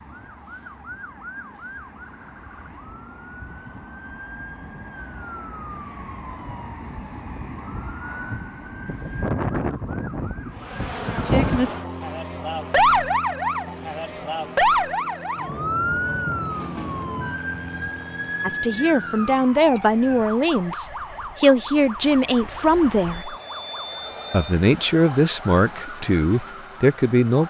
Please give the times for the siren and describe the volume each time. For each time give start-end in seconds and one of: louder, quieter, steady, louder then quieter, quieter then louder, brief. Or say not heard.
0.0-27.4 louder then quieter.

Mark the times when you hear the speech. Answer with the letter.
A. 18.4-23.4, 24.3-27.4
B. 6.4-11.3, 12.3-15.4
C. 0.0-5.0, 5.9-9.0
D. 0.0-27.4
A.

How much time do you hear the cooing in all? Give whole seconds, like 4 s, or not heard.
not heard.